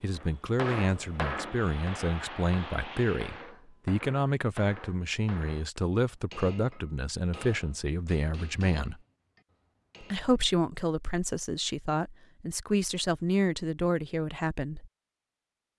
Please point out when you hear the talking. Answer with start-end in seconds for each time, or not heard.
0.0-9.0, 10.0-14.9.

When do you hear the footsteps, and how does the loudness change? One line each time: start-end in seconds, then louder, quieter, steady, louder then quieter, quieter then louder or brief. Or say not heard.
not heard.